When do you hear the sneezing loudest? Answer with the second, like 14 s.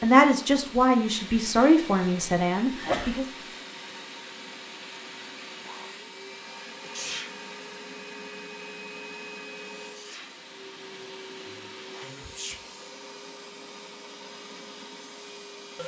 3 s.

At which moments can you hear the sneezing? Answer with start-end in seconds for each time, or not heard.
2.8-3.2, 6.8-7.4, 12.0-12.6.